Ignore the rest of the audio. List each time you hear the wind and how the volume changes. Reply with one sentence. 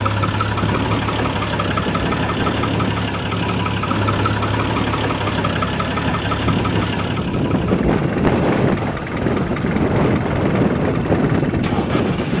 The wind can be heard from 0.1 to 12.3 s, getting louder.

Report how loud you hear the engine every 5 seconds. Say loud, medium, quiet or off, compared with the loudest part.
loud, loud, medium.